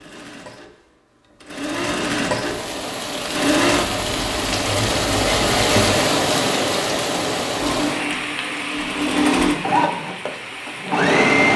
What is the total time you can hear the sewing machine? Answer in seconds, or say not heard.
10 s.